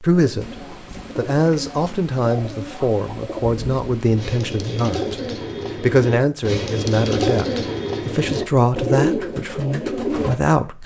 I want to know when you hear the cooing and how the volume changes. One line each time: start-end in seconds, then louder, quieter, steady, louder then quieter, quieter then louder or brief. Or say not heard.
0.1-10.3 louder.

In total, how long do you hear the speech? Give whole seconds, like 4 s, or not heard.
10 s.